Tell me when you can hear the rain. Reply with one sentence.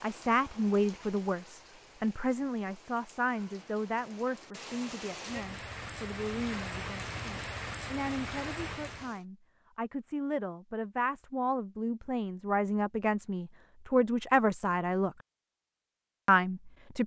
You can hear the rain from 0.0 to 9.2 s.